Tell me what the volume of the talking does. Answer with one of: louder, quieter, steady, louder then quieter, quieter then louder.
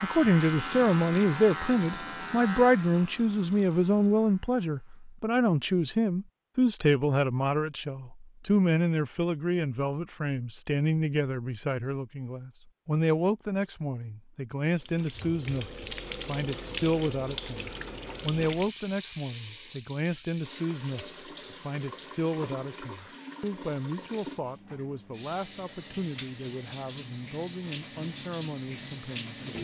quieter.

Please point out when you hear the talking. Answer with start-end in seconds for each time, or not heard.
0.0-29.5.